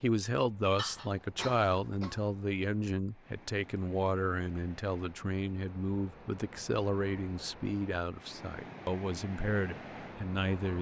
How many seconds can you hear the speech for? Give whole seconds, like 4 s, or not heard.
11 s.